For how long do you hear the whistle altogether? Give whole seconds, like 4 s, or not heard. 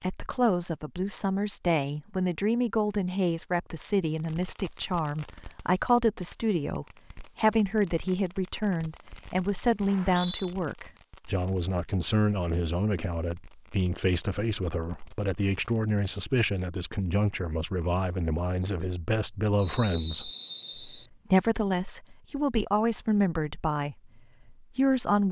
2 s.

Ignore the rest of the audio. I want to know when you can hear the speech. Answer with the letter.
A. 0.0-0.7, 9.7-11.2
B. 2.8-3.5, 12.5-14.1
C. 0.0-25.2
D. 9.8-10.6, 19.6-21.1
C.